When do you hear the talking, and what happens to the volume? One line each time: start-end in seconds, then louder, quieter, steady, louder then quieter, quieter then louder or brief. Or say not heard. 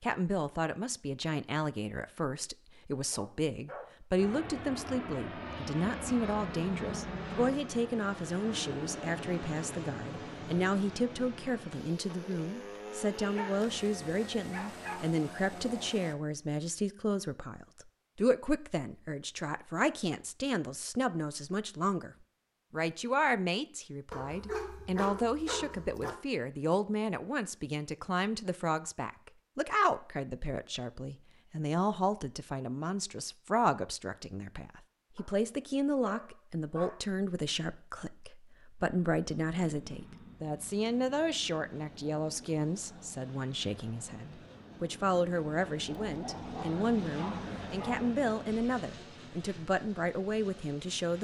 0.0-51.2 steady.